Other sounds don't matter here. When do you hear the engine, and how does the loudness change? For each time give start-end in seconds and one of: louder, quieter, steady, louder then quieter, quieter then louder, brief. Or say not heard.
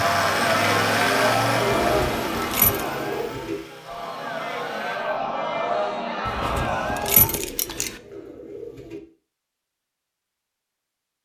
0.0-5.2 quieter.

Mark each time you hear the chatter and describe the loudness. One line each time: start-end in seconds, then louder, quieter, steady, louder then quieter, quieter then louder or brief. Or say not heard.
0.0-7.4 quieter then louder.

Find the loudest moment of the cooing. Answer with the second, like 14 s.
2 s.